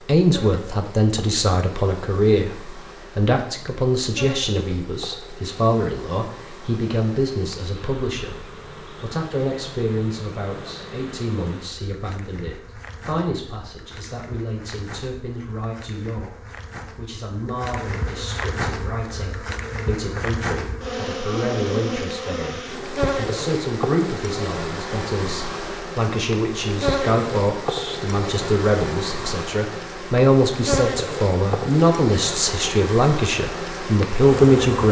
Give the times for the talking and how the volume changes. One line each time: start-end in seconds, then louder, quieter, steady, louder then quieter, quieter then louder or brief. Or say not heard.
0.1-34.8 quieter then louder.